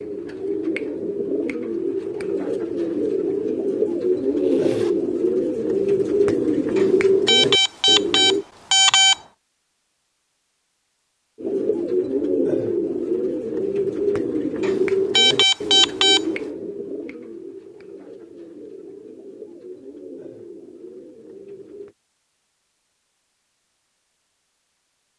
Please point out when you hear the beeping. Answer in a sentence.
The beeping can be heard from 6.8 to 9.2 s and from 14.6 to 16.2 s.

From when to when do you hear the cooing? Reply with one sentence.
The cooing can be heard from 0.0 to 8.4 s and from 11.4 to 21.9 s.